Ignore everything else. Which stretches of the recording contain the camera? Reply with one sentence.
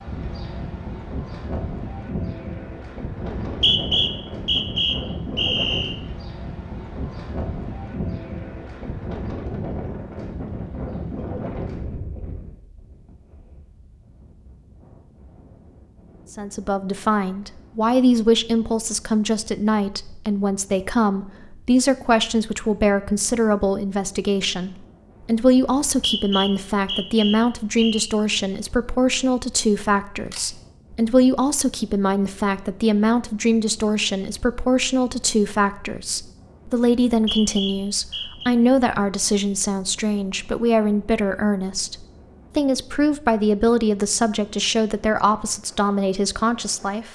The camera can be heard from 30.2 to 30.6 s.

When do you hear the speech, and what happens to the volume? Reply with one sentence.
The speech can be heard from 16.3 to 47.1 s, at a steady volume.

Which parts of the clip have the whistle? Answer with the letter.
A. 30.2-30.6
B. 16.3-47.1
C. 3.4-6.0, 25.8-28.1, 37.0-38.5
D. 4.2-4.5
C.